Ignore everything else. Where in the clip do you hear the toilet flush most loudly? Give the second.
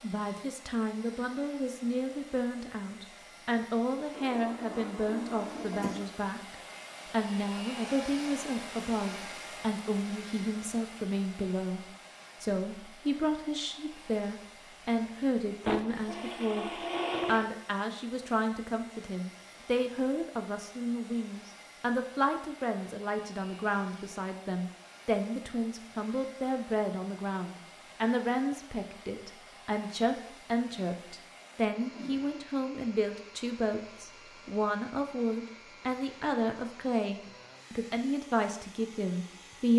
17 s.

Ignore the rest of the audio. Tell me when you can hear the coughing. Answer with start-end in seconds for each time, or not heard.
5.5-6.0.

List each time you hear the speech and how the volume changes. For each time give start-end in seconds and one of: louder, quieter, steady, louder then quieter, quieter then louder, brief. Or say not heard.
0.0-39.7 steady.